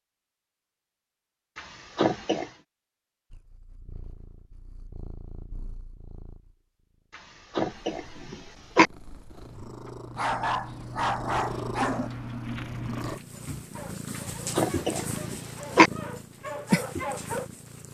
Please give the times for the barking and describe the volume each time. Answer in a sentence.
The barking can be heard from 9.4 to 17.5 s, getting quieter then louder.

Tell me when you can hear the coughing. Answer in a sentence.
You can hear the coughing from 1.6 to 2.5 s, from 7.5 to 8.9 s and from 14.6 to 15.9 s.